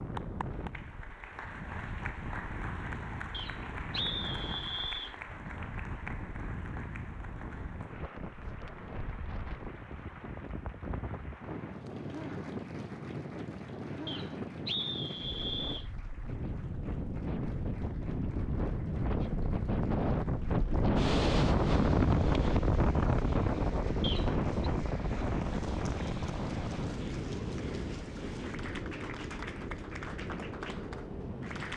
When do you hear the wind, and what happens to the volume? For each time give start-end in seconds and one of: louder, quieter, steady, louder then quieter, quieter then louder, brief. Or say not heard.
0.0-31.7 louder then quieter.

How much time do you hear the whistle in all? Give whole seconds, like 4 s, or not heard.
4 s.